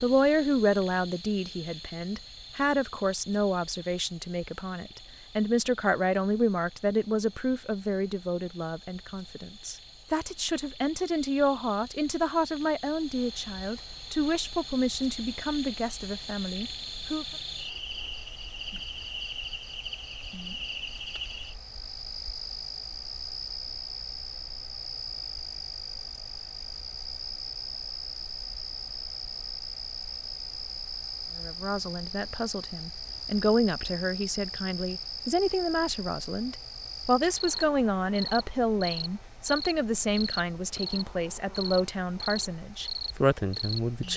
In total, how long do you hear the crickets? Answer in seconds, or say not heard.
44 s.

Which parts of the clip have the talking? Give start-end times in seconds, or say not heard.
0.0-17.2, 31.4-44.1.